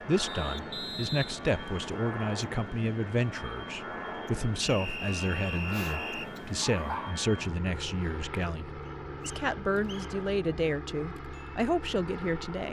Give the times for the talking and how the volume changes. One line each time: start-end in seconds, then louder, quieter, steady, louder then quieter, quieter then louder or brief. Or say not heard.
0.1-12.6 steady.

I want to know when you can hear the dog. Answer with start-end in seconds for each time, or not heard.
5.7-7.2.